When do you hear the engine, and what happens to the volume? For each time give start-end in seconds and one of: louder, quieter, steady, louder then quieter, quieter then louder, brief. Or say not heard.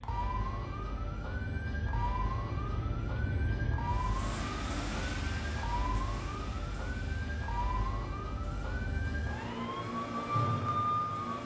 0.0-11.4 louder then quieter.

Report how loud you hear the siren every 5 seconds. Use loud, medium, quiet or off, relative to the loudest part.
medium, medium, loud.